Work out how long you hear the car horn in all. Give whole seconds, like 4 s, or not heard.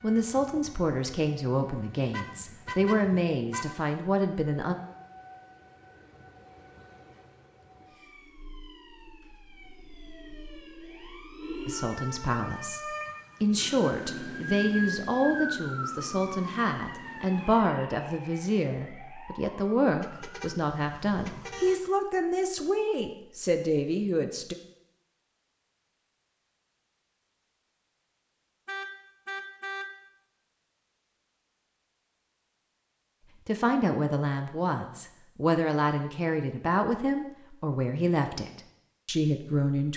5 s.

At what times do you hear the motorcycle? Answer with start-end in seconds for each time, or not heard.
not heard.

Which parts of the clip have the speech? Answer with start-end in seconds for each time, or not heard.
0.0-4.8, 11.7-12.8, 13.4-24.6, 33.5-39.9.